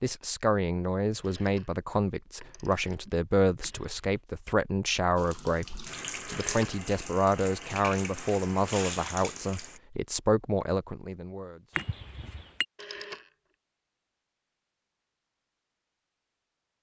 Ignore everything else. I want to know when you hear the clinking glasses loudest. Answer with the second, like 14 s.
12 s.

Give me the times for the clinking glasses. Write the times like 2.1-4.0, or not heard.
3.6-4.2, 11.8-12.7.